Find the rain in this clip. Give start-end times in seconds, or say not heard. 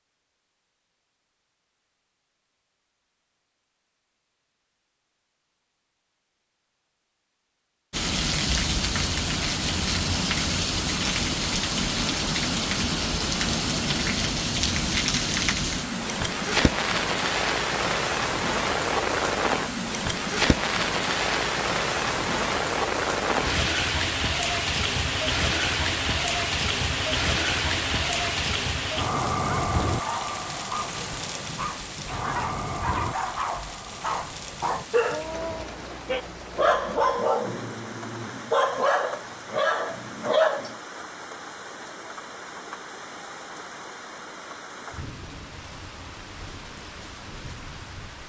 7.9-48.2.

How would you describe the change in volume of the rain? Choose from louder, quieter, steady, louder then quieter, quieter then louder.
quieter.